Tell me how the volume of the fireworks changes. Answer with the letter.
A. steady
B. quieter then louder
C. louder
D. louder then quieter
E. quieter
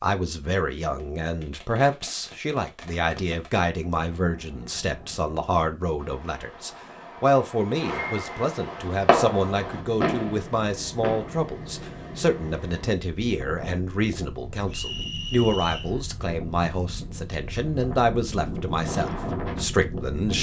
C.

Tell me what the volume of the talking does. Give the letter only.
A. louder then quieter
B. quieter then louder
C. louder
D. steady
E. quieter
D.